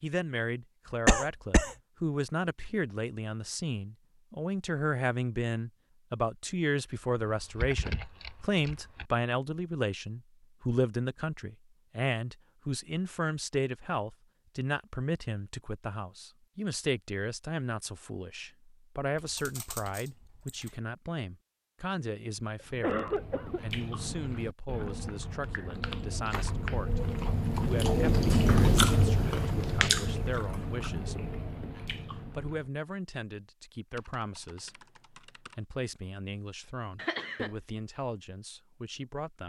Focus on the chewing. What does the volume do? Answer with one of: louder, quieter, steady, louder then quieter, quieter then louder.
louder then quieter.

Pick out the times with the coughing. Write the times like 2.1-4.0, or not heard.
1.1-1.8, 22.8-23.6, 37.0-37.5.